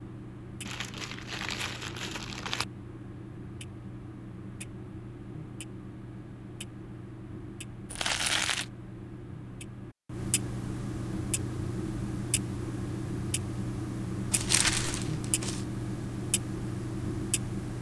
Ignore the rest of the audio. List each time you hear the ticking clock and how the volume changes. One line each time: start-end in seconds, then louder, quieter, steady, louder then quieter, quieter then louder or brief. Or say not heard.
0.0-17.7 louder.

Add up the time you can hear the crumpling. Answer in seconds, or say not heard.
4 s.